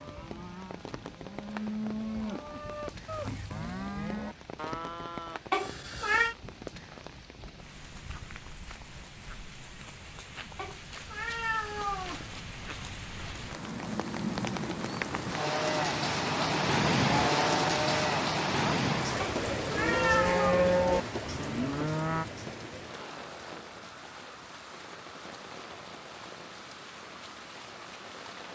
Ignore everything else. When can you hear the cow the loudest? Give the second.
21 s.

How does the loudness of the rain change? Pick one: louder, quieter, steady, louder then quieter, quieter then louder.
louder then quieter.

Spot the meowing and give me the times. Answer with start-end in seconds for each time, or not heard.
5.5-6.3, 10.6-12.3, 19.2-20.6.